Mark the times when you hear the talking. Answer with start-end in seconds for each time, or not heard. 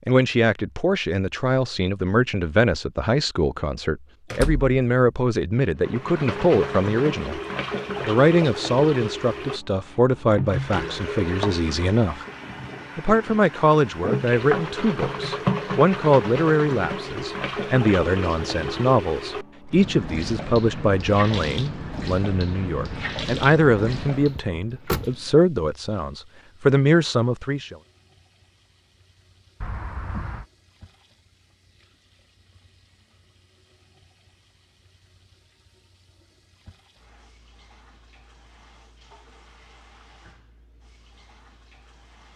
0.1-7.4, 8.1-12.2, 12.9-27.8.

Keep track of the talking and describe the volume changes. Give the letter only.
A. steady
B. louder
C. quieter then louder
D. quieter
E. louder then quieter
A.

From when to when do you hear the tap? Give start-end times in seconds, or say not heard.
5.8-42.3.